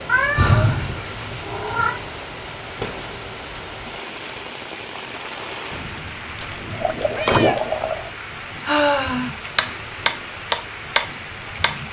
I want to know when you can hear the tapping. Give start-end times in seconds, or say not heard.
9.6-11.7.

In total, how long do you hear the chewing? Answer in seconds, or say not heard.
not heard.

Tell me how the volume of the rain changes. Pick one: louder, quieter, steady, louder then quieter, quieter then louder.
steady.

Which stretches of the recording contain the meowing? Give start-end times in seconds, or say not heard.
0.1-2.0, 6.4-8.1.